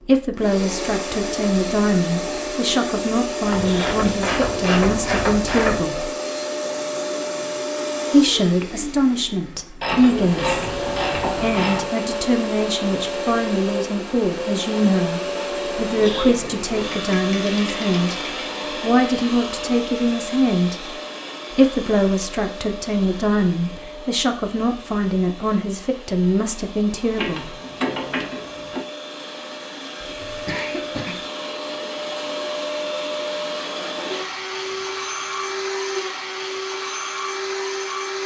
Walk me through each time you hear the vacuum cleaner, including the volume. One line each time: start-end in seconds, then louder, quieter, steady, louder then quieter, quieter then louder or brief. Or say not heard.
0.0-38.2 quieter then louder.